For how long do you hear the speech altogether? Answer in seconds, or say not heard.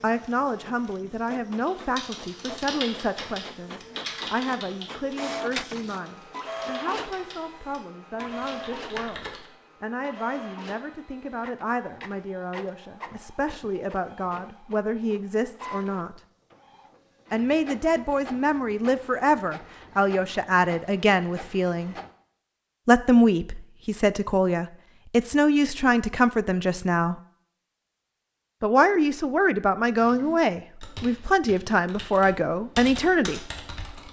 30 s.